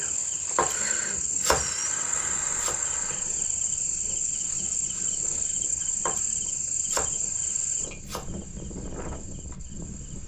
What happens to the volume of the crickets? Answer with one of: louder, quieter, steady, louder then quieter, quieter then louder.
quieter.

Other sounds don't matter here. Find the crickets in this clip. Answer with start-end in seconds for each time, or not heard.
0.0-10.2.